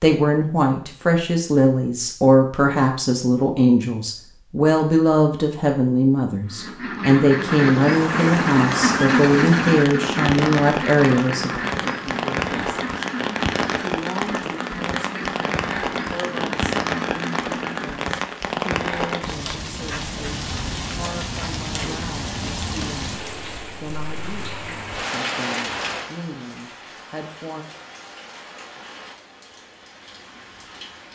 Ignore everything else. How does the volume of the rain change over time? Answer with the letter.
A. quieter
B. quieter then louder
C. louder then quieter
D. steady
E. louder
A.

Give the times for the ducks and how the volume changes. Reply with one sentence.
The ducks can be heard from 6.5 to 18.1 s, getting quieter.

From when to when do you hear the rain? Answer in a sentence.
You can hear the rain from 7.4 to 31.0 s.